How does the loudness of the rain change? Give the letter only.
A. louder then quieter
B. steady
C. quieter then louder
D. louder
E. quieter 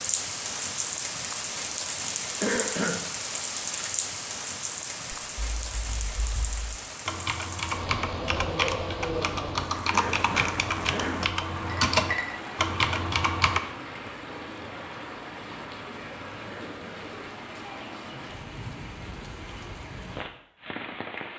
E.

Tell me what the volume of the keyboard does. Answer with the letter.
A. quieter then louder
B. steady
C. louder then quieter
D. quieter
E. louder
E.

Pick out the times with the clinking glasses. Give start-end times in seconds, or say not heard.
11.7-12.3.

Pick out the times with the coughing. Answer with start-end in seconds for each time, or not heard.
2.4-3.0, 9.9-11.2, 16.4-17.1.